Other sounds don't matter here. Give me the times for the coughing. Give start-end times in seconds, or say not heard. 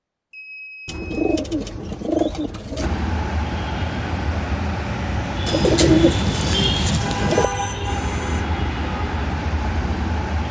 not heard.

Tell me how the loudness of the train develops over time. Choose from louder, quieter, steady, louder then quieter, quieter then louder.
steady.